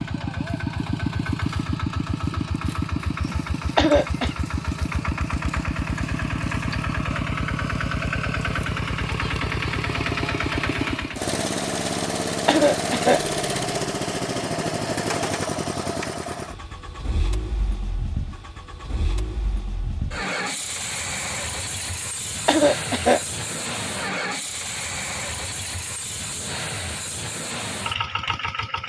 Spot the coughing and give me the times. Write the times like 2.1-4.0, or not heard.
3.8-4.3, 12.4-13.2, 22.4-23.2.